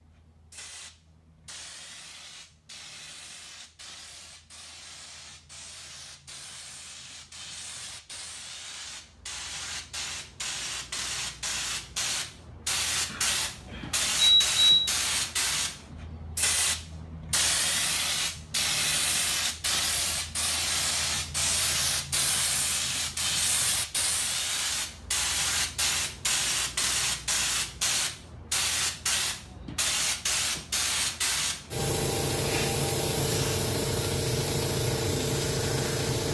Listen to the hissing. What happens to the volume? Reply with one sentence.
The volume of the hissing goes up.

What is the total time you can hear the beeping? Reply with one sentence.
You can hear the beeping for 2 seconds altogether.